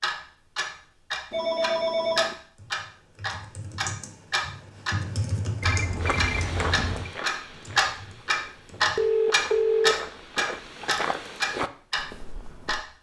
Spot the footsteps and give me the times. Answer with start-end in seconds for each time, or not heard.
6.0-12.8.